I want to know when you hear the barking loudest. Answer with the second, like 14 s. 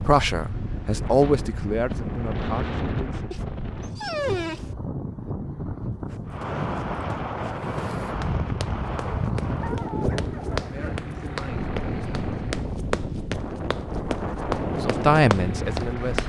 4 s.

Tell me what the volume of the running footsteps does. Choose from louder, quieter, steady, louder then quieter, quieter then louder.
louder.